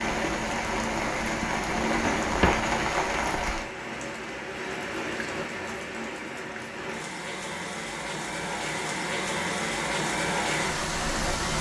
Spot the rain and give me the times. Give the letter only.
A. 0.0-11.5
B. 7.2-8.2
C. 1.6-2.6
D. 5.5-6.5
A.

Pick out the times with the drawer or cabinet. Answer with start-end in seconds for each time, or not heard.
1.6-2.6.